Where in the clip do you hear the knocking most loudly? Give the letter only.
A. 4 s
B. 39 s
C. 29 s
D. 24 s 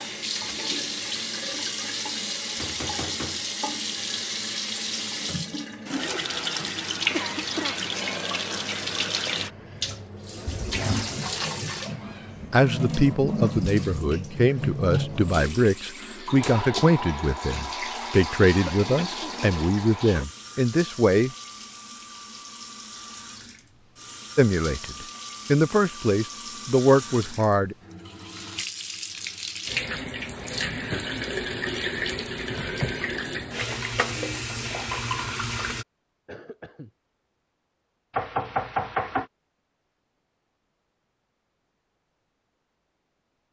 B.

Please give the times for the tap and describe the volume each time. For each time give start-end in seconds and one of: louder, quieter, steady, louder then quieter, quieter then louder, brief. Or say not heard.
0.0-35.9 quieter then louder.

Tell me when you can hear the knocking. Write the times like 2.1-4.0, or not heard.
2.5-3.5, 38.1-39.2.